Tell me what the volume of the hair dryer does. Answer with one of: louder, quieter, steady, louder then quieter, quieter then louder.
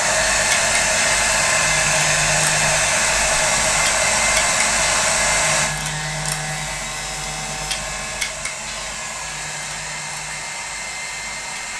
quieter.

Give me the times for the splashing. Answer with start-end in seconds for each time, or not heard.
not heard.